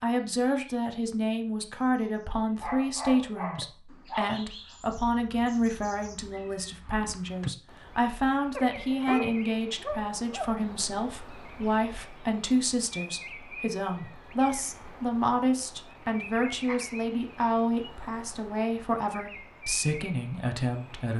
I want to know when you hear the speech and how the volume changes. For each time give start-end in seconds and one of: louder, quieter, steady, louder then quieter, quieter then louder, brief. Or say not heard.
0.0-21.1 steady.